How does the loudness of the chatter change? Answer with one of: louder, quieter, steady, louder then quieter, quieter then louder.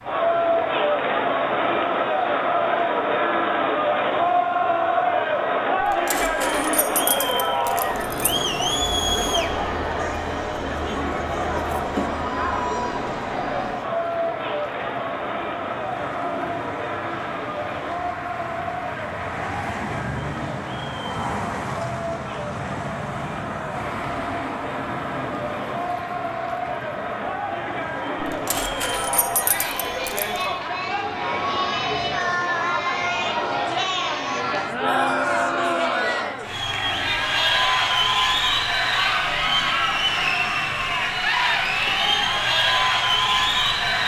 quieter then louder.